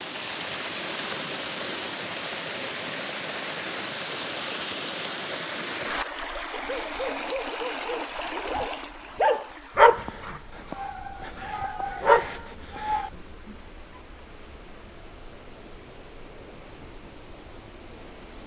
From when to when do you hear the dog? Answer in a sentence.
You can hear the dog from 6.5 to 13.5 s.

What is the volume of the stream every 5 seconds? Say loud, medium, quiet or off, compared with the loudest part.
loud, loud, quiet, quiet.